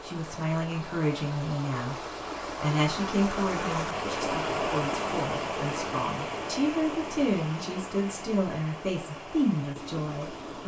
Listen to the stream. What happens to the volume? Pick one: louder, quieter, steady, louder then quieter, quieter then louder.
louder then quieter.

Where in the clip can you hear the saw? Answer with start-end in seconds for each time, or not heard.
not heard.